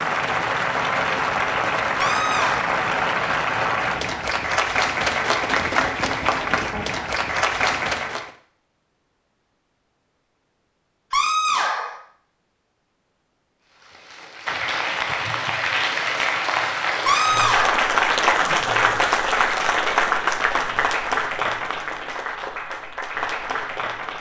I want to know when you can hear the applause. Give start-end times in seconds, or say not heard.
0.0-8.3, 13.8-24.1.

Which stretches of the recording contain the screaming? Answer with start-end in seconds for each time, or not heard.
1.9-2.8, 11.1-12.0, 17.1-17.9.